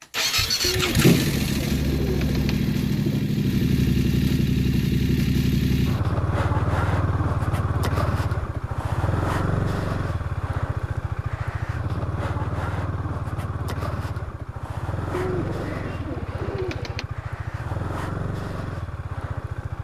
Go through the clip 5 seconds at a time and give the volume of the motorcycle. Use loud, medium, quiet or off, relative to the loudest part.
loud, loud, medium, medium.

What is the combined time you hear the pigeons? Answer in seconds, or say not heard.
5 s.